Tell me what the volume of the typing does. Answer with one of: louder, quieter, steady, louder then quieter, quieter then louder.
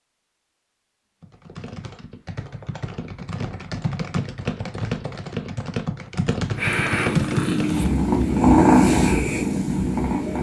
louder.